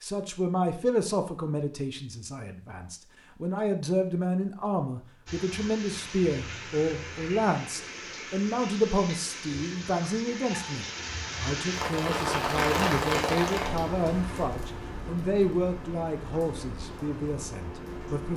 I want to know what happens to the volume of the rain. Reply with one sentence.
The volume of the rain goes up, then down.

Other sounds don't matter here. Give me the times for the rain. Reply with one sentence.
You can hear the rain from 5.2 to 18.3 s.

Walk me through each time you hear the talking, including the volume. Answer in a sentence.
The talking can be heard from 0.0 to 18.3 s, at a steady volume.